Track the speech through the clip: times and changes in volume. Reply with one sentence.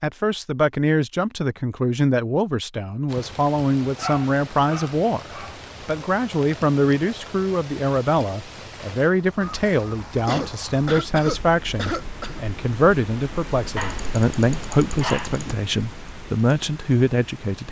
You can hear the speech from 0.0 to 17.6 s, at a steady volume.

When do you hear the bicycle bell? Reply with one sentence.
The bicycle bell can't be heard in this clip.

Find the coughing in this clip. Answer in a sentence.
You can hear the coughing from 10.2 to 12.4 s.